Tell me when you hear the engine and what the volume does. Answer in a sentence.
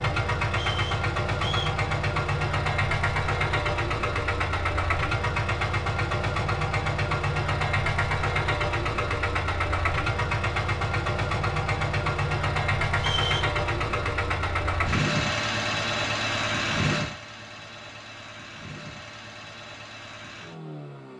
The engine can be heard from 0.0 to 21.1 s, getting quieter.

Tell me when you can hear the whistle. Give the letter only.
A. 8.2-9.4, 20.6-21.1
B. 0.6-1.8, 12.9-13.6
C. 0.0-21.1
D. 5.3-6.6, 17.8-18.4
B.